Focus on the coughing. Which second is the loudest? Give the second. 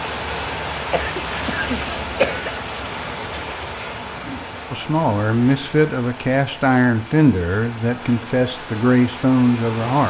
2 s.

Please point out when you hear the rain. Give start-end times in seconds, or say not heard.
0.0-10.0.